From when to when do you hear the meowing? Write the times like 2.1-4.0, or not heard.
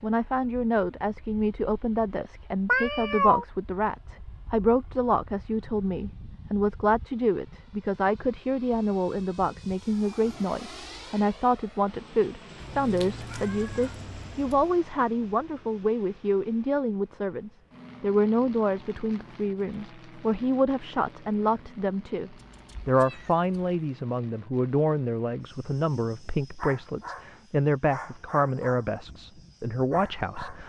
2.6-3.5, 12.6-14.7, 22.4-23.6.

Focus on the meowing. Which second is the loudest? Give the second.
3 s.